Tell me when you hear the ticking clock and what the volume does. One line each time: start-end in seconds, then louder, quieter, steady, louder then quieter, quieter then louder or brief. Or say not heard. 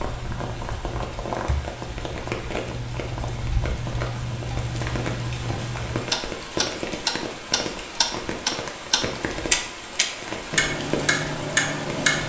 0.0-12.2 louder.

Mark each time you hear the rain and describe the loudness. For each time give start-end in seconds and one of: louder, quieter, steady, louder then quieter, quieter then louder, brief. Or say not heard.
0.0-12.2 steady.